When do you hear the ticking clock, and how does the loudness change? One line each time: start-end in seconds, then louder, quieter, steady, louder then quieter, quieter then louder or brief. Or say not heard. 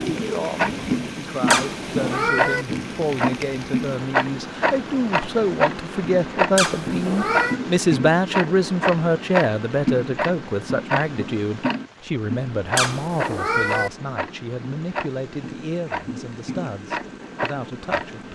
0.0-18.2 quieter.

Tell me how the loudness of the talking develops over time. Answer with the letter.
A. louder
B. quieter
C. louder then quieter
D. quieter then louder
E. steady
C.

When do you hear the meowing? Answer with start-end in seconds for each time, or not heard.
1.4-2.6, 6.5-7.6, 12.8-13.9.